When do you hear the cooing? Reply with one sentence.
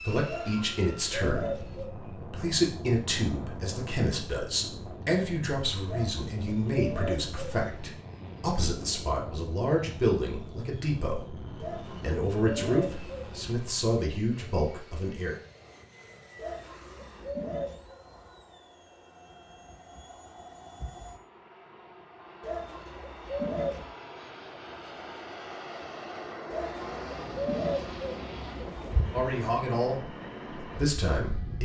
You can hear the cooing from 0.2 to 1.9 s, from 5.8 to 7.6 s, from 11.6 to 13.6 s, from 16.4 to 18.0 s, from 22.4 to 23.9 s and from 26.5 to 29.4 s.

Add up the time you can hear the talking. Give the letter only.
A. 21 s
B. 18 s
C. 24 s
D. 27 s
B.